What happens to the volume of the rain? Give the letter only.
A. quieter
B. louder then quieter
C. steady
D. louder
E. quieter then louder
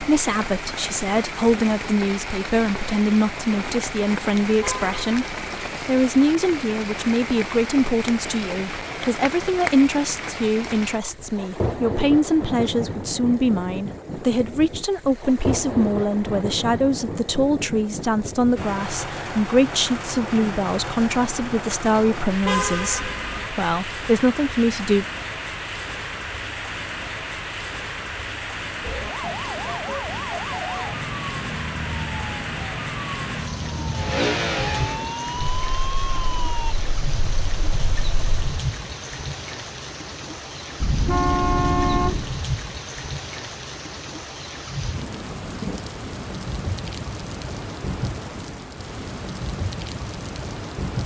C.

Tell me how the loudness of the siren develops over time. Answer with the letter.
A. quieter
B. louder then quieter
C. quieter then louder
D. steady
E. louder
D.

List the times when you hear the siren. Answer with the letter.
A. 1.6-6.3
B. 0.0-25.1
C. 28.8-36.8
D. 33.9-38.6
C.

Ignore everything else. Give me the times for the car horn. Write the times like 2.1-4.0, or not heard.
4.6-5.4, 22.4-23.5, 40.8-42.4.